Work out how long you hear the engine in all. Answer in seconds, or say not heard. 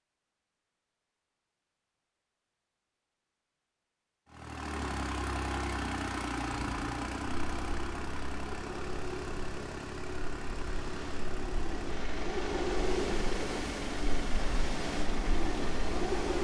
12 s.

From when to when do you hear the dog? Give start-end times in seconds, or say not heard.
not heard.